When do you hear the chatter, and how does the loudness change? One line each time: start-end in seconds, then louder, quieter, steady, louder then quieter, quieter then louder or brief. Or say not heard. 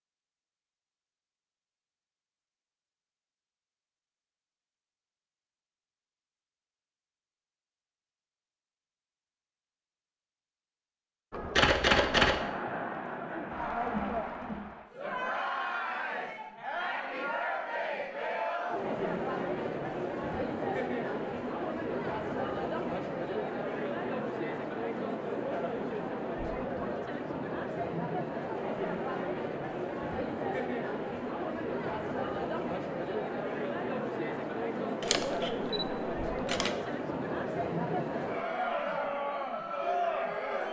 11.3-40.6 steady.